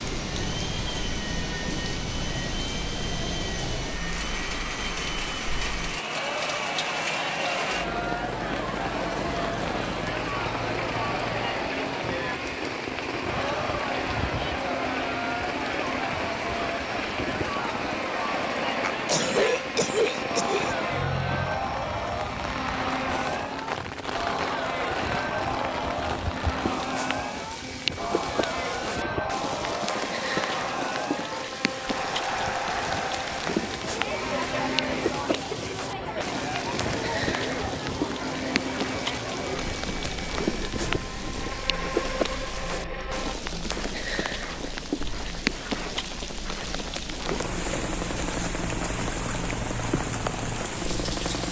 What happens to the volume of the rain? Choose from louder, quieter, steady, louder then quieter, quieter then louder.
steady.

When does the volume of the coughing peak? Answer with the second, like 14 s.
19 s.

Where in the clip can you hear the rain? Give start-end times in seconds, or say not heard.
0.0-51.4.